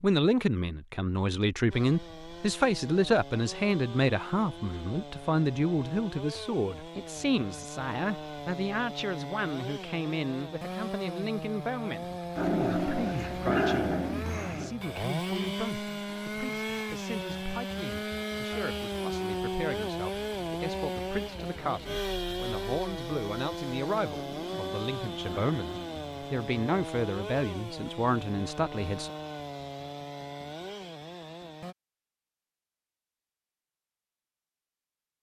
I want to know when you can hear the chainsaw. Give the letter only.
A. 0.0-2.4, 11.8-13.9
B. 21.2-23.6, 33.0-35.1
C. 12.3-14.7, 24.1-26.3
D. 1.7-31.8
D.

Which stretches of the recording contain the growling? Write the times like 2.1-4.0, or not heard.
12.3-14.7, 24.1-26.3.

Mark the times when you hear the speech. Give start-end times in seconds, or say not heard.
0.0-29.1.